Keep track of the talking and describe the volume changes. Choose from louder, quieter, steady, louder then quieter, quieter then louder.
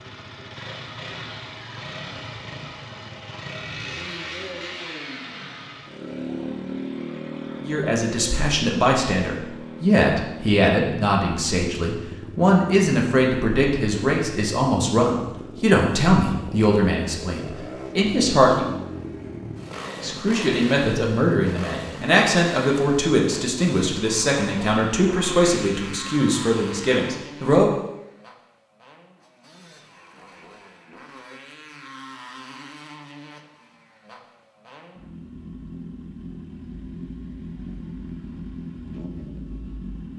steady.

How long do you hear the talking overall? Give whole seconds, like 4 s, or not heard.
19 s.